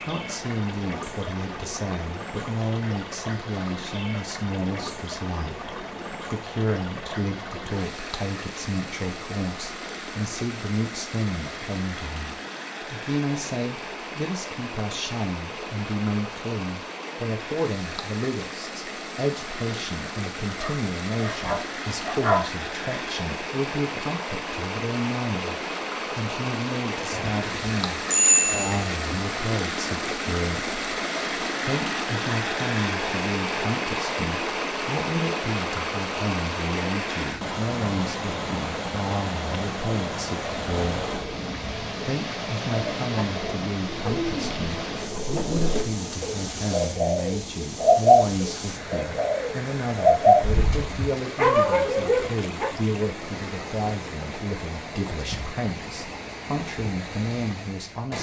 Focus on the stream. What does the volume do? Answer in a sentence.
The volume of the stream goes up, then down.